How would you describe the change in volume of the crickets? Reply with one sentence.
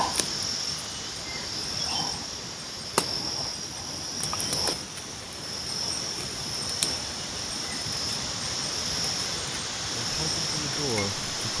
The volume of the crickets stays about the same.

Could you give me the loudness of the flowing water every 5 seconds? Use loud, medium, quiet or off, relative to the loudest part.
medium, loud, loud.